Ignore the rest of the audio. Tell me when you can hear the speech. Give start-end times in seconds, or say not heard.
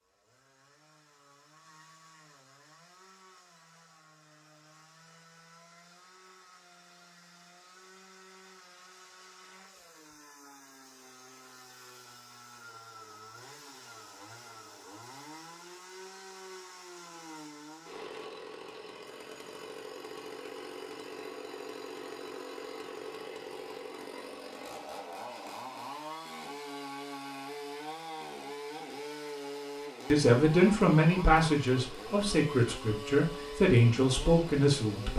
30.1-35.1.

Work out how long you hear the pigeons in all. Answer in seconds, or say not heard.
not heard.